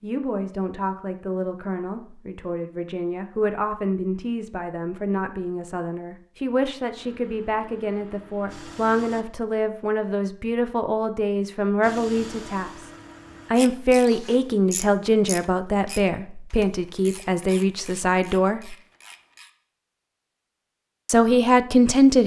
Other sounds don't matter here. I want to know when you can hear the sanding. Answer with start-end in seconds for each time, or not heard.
not heard.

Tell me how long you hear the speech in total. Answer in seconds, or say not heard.
19 s.